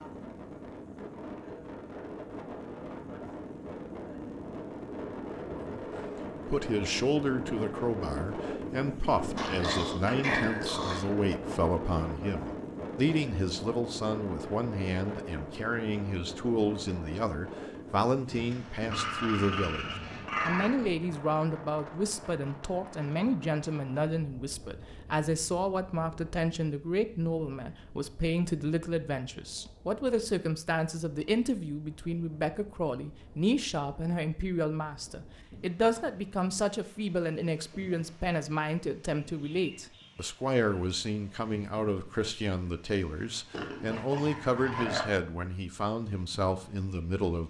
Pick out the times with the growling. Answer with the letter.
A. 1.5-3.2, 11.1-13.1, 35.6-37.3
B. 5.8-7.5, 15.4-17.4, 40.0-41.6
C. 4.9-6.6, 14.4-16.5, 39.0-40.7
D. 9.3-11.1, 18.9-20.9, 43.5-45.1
D.